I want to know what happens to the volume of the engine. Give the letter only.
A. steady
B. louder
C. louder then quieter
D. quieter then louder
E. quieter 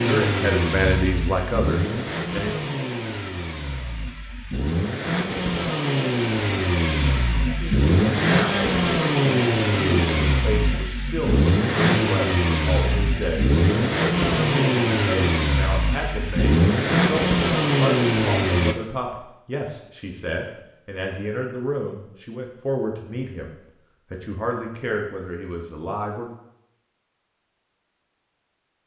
B.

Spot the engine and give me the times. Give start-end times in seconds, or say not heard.
0.0-18.8.